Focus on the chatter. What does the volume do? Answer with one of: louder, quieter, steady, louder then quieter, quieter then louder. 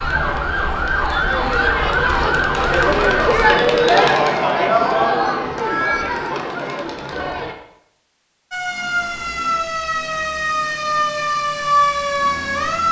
louder then quieter.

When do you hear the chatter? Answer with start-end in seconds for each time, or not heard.
0.0-7.5.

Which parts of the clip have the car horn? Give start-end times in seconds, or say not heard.
not heard.